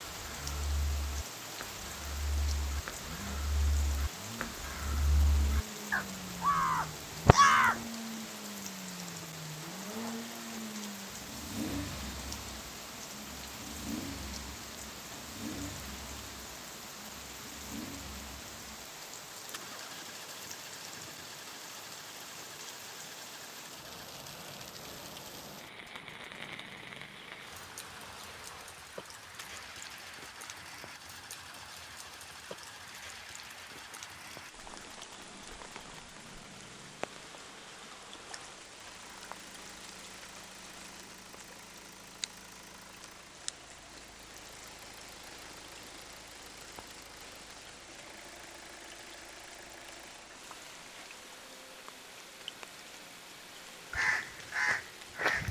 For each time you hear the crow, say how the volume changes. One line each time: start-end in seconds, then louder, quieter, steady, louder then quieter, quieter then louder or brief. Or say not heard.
0.1-7.8 louder
53.9-55.4 brief.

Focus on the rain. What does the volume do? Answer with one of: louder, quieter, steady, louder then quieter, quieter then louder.
quieter.